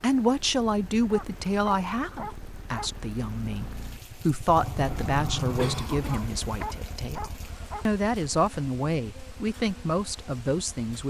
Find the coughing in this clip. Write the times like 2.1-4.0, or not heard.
5.5-6.7.